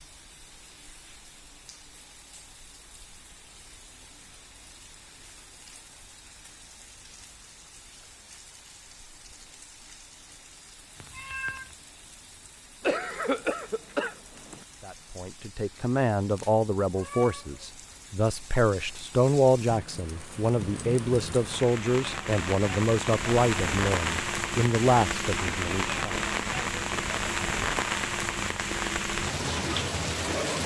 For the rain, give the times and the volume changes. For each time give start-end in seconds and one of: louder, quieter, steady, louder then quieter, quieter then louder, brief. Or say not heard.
0.0-30.6 louder.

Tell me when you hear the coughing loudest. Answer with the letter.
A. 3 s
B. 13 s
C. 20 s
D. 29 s
B.